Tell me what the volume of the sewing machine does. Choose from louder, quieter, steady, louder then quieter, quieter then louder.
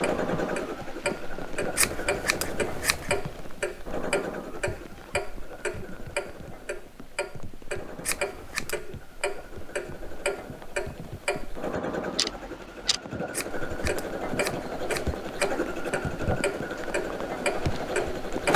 quieter then louder.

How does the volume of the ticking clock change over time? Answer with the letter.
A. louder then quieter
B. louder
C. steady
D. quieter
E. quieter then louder
C.